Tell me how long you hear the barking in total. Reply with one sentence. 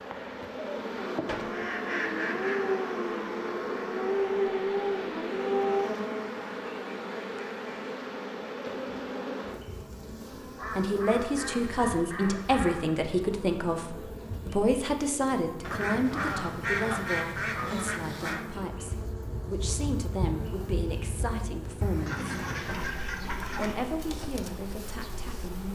You can hear the barking for 5 seconds altogether.